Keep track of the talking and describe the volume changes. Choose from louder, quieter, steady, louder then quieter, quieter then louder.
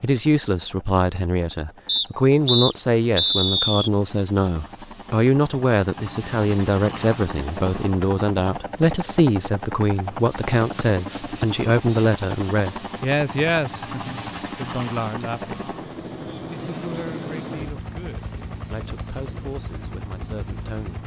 quieter.